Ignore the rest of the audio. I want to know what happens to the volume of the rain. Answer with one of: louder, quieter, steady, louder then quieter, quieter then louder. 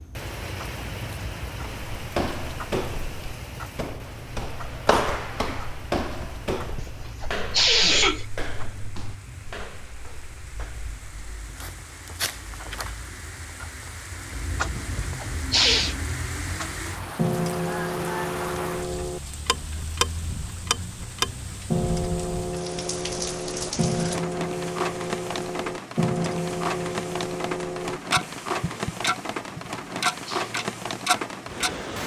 quieter then louder.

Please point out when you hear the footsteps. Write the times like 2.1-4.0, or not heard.
1.6-13.1.